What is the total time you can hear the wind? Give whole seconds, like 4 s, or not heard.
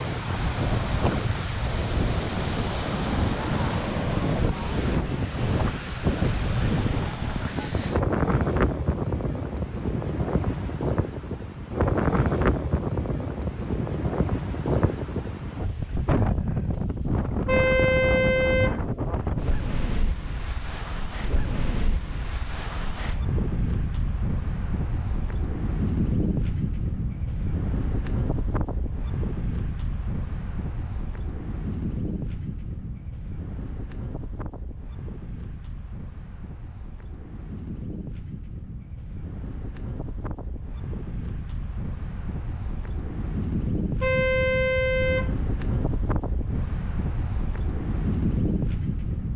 49 s.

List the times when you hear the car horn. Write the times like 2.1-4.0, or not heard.
17.4-18.8, 44.0-45.4.